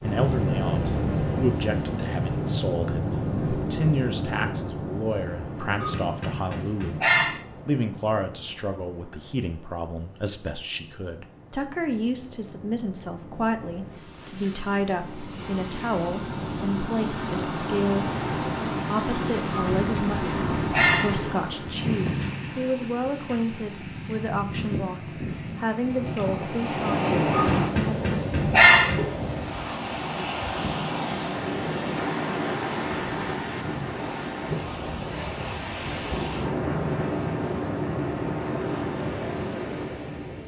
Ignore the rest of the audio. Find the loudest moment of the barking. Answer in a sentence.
The loudest moment of the barking is at 29 seconds.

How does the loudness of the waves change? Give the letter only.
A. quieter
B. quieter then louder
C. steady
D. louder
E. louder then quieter
B.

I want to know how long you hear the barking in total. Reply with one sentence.
The barking can be heard for 6 seconds in total.